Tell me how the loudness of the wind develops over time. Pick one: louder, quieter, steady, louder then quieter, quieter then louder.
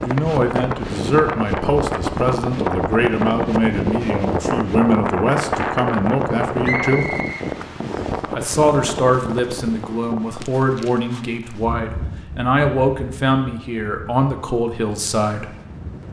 quieter.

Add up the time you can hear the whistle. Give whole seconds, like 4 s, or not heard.
2 s.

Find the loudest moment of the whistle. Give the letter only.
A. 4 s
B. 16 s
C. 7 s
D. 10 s
C.